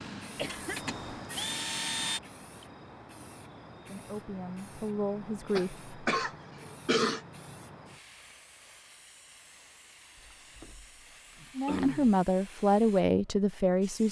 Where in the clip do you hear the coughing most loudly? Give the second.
7 s.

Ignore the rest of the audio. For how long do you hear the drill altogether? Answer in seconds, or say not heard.
2 s.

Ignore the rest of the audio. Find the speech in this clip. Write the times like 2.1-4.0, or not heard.
3.8-5.8, 11.6-14.0.